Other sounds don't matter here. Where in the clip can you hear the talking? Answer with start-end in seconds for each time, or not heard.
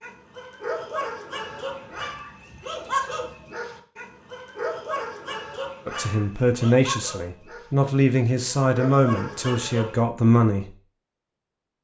5.8-10.8.